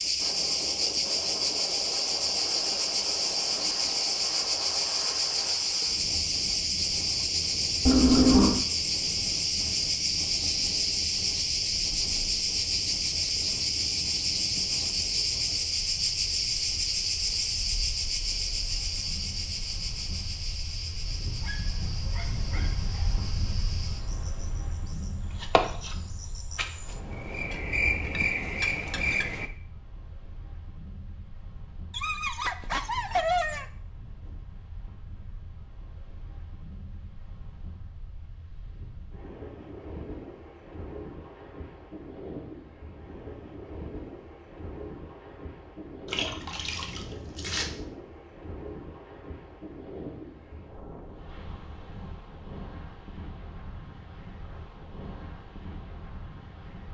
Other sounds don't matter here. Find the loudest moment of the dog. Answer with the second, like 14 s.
33 s.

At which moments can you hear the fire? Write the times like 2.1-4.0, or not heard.
not heard.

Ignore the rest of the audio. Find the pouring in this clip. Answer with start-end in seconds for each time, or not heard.
7.8-8.6, 46.1-47.6.